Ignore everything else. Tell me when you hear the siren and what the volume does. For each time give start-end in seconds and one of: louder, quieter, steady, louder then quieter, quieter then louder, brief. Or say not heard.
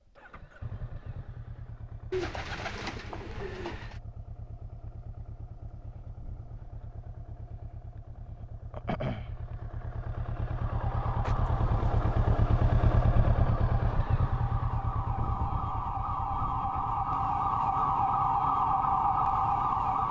10.5-20.0 louder.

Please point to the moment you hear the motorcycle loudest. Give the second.
13 s.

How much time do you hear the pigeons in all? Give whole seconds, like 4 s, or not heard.
4 s.